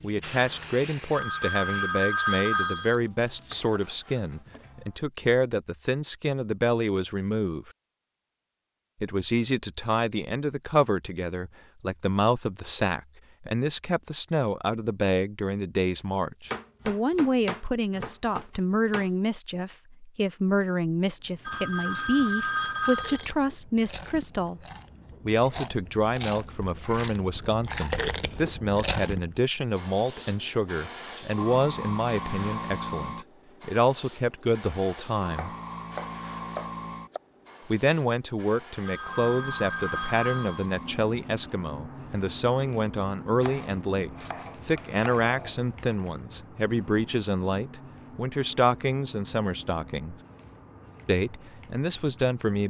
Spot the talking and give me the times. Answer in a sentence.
The talking can be heard from 0.0 to 7.7 s, from 9.0 to 24.6 s, from 25.2 to 35.5 s, from 37.6 to 50.1 s and from 51.0 to 52.6 s.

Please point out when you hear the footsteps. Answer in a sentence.
You can't hear the footsteps here.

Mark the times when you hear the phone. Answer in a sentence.
You can hear the phone from 1.1 to 3.0 s, from 21.4 to 23.3 s and from 38.9 to 40.7 s.